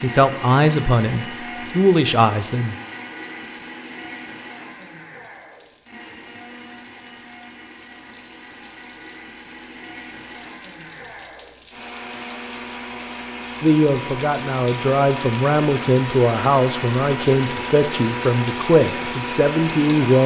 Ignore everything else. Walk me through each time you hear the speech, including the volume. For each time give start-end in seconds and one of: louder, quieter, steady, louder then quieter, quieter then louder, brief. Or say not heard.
0.0-2.8 brief
13.6-20.2 steady.